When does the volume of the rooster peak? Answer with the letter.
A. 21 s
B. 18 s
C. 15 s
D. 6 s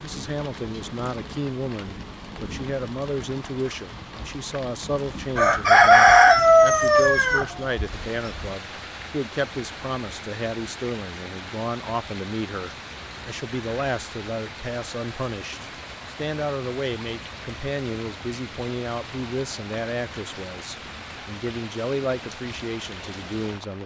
D.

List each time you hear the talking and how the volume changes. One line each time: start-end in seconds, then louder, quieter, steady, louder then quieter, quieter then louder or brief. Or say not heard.
0.0-23.8 steady.